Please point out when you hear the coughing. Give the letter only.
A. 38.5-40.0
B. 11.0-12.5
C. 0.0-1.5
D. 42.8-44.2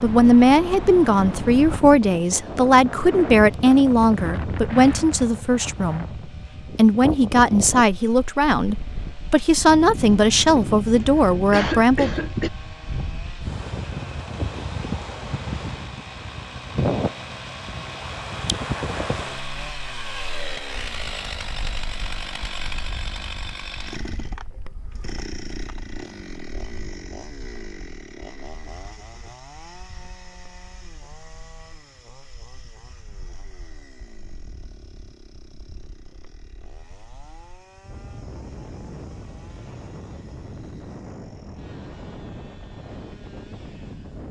B.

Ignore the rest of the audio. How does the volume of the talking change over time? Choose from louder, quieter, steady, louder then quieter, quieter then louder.
steady.